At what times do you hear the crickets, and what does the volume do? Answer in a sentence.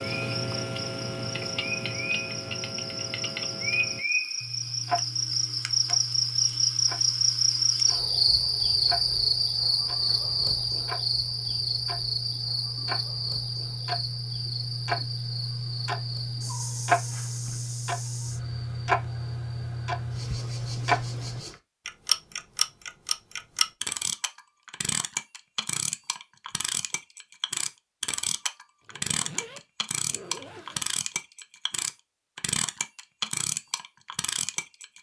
The crickets can be heard from 0.0 to 21.6 s, getting louder then quieter.